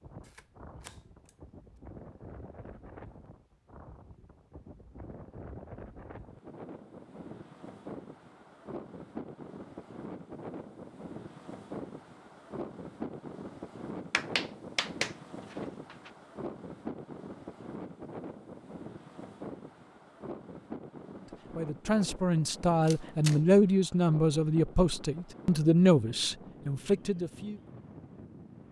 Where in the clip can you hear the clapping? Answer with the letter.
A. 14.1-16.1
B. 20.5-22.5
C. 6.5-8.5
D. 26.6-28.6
A.